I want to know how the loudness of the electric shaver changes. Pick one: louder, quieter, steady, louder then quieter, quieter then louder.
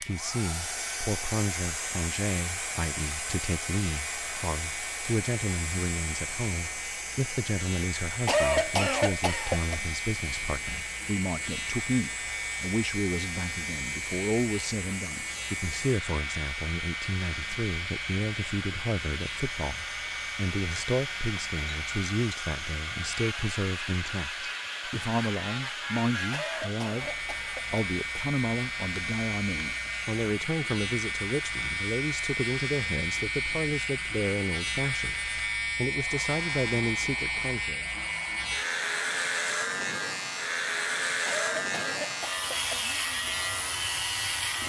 louder.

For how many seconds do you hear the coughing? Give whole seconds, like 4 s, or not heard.
5 s.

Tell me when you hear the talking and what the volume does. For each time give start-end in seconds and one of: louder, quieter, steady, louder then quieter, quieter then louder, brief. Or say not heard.
0.0-37.9 steady.